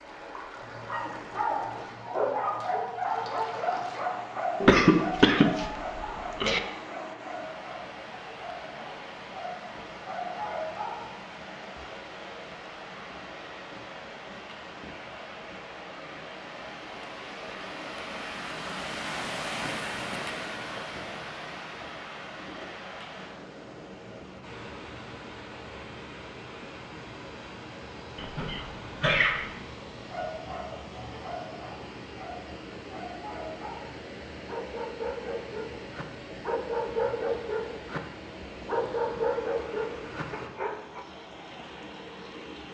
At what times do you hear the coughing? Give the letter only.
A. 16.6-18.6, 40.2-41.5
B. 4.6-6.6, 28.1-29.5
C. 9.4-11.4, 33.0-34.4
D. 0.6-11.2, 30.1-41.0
B.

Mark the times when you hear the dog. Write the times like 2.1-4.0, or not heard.
0.6-11.2, 30.1-41.0.